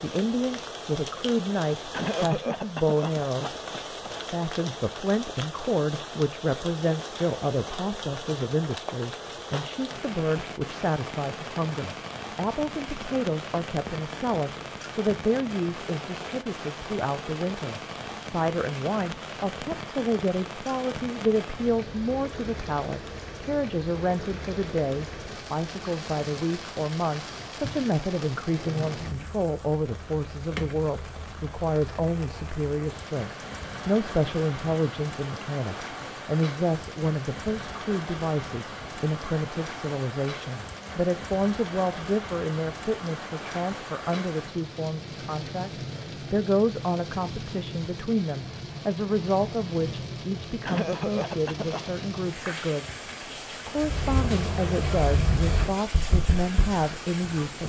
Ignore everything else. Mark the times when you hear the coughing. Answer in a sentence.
You can hear the coughing from 1.9 to 4.1 s and from 50.6 to 52.0 s.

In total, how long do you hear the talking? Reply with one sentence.
The talking can be heard for 57 seconds in total.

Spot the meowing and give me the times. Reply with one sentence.
The meowing can't be heard in this clip.